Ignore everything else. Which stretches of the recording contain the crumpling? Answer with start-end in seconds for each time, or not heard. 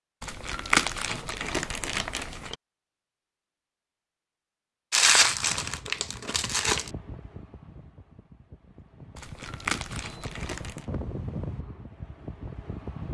0.2-2.5, 4.9-6.9, 9.2-10.8.